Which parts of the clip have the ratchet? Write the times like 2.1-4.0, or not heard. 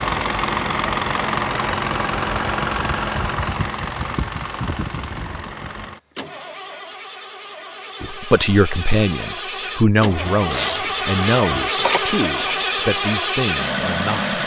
10.2-12.7.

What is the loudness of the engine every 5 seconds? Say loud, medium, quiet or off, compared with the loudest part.
loud, medium, loud.